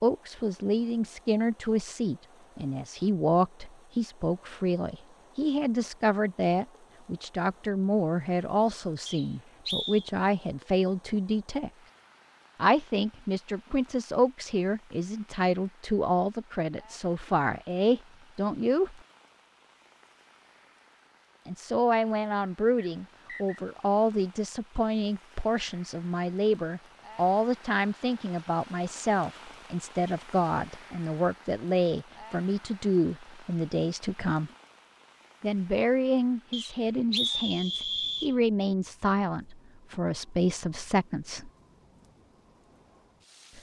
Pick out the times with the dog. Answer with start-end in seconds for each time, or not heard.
not heard.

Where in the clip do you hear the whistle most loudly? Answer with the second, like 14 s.
37 s.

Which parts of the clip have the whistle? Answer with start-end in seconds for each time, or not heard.
9.1-10.1, 22.8-23.6, 36.5-38.4.